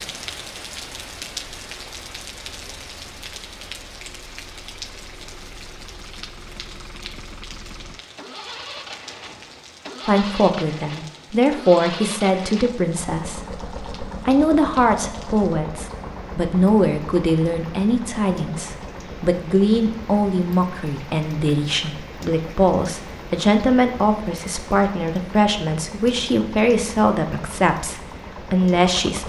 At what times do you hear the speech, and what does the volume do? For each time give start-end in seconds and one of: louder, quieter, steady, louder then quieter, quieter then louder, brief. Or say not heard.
10.1-29.2 steady.